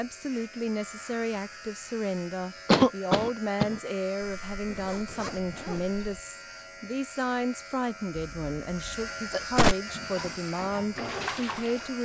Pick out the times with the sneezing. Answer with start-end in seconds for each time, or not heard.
2.6-3.8, 8.2-9.8.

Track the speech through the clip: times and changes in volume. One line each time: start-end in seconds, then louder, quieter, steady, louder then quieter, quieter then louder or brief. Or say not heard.
0.0-12.0 steady.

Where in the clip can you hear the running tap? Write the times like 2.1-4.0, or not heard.
9.8-12.0.